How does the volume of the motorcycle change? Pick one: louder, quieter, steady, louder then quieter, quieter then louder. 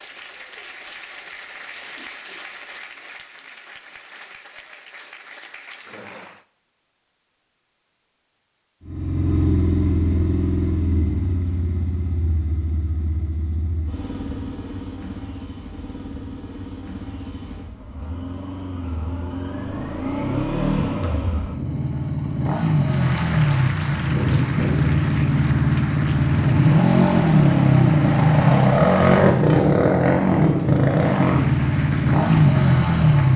quieter then louder.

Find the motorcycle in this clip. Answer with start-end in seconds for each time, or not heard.
8.8-33.3.